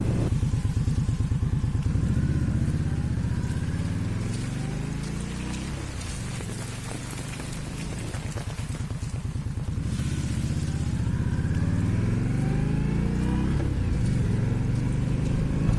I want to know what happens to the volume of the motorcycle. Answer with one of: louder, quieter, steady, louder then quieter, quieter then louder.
quieter then louder.